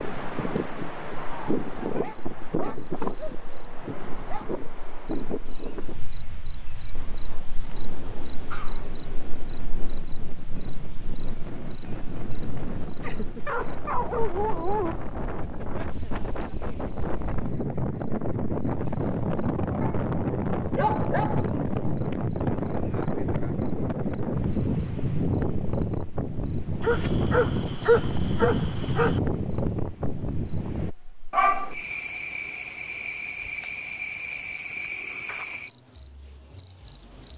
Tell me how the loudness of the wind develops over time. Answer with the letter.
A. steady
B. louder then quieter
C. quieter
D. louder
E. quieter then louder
E.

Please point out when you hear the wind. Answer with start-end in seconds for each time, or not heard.
0.0-30.9.